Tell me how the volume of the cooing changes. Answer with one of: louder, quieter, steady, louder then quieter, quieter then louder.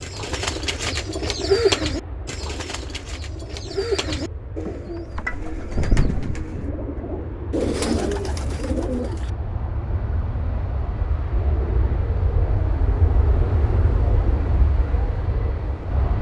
quieter then louder.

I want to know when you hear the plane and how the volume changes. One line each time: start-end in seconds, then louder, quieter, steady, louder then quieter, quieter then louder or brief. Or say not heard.
0.0-16.1 louder.